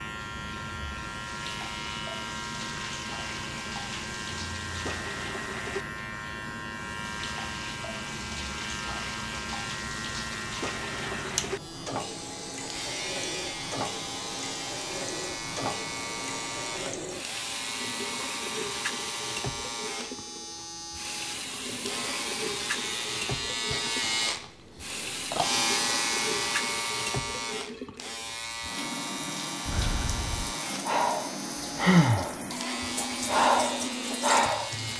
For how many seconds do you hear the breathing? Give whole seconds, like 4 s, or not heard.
5 s.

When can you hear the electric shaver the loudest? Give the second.
26 s.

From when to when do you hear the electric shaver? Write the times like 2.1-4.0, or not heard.
0.0-34.9.